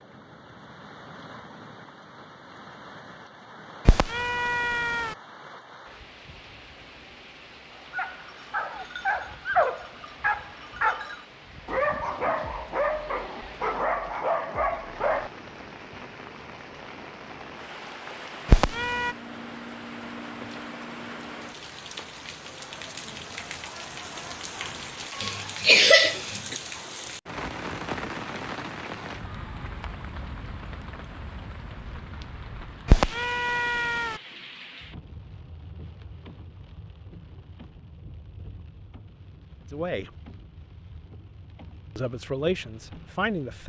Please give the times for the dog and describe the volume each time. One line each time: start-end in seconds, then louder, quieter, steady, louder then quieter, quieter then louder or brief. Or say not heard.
7.9-15.3 steady.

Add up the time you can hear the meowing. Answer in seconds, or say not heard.
3 s.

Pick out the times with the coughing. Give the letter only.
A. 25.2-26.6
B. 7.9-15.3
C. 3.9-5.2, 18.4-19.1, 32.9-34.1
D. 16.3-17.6
A.